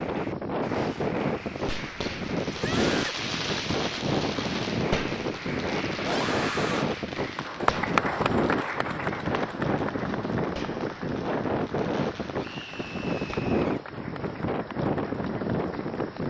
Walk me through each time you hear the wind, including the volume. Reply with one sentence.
You can hear the wind from 0.0 to 16.2 s, at a steady volume.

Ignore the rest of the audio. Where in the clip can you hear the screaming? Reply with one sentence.
The screaming can be heard from 2.5 to 3.2 s, from 6.0 to 6.9 s and from 12.3 to 13.8 s.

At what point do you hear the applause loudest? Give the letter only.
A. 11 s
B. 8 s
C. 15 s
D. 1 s
B.